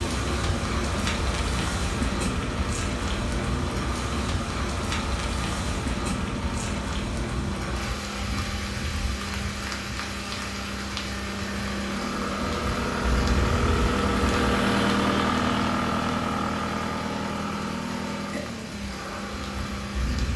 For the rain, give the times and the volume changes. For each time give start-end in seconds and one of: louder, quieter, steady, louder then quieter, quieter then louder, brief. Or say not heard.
0.0-20.3 quieter.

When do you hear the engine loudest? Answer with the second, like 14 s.
15 s.